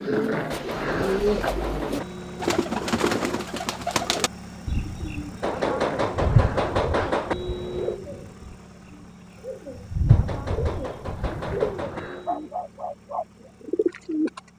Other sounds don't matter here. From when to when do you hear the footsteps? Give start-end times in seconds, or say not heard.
not heard.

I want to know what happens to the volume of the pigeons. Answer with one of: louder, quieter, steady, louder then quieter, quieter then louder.
steady.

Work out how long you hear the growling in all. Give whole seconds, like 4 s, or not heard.
4 s.